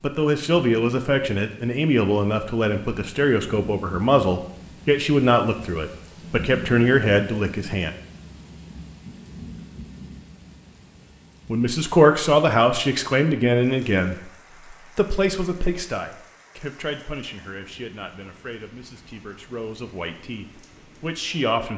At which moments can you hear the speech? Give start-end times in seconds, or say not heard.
0.0-7.9, 11.5-21.7.